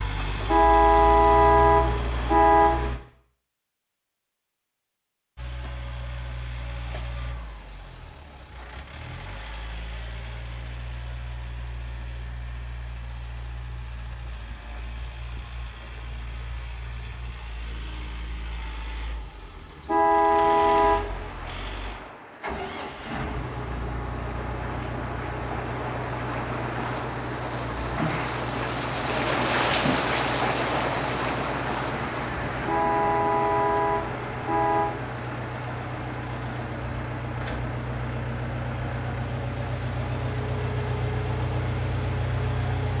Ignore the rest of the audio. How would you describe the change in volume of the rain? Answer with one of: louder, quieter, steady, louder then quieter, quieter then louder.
louder then quieter.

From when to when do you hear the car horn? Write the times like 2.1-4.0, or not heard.
0.5-2.9, 19.9-21.0, 32.6-35.0.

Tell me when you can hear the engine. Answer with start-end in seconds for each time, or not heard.
0.0-3.0, 5.3-42.9.